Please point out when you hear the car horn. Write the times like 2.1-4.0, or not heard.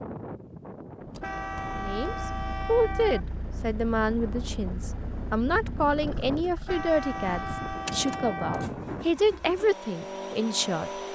1.2-3.2, 6.7-8.7.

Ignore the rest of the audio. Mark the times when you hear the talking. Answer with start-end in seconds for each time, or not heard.
1.8-10.9.